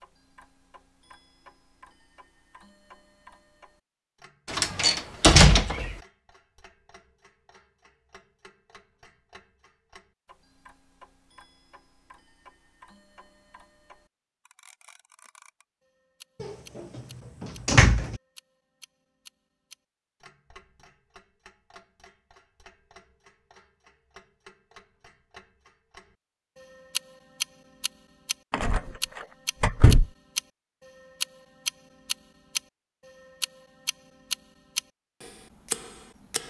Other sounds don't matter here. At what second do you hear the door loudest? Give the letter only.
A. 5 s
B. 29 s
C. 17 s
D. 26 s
A.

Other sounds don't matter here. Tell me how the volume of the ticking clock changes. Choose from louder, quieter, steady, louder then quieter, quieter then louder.
louder.